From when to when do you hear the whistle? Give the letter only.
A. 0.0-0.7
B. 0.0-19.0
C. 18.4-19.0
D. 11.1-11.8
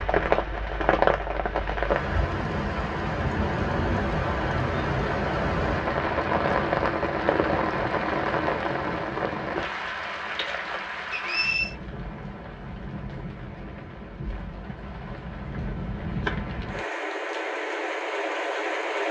D.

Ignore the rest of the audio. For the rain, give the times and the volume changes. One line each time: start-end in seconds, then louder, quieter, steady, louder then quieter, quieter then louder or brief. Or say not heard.
0.0-19.0 quieter then louder.